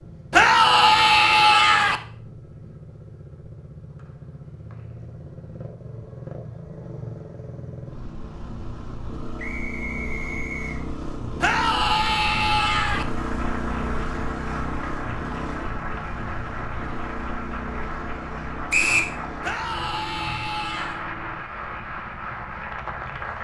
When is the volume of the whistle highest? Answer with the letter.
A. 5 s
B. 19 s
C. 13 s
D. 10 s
B.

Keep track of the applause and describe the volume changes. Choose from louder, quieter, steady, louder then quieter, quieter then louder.
steady.